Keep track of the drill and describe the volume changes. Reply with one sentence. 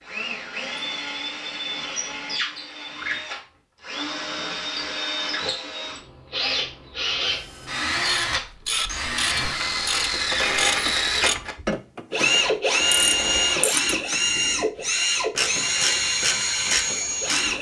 The volume of the drill goes up.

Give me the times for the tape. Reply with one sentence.
You can't hear the tape here.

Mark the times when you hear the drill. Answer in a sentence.
The drill can be heard from 0.0 to 17.5 s.